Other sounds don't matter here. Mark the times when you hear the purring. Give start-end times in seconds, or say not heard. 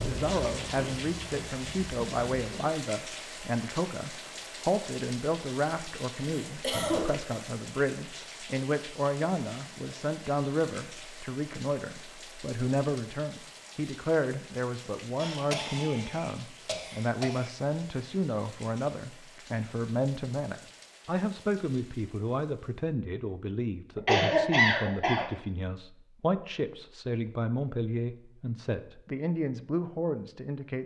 0.0-2.7.